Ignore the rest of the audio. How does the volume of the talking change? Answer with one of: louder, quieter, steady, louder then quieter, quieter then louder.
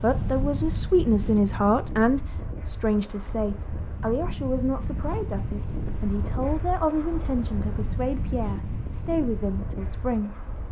quieter.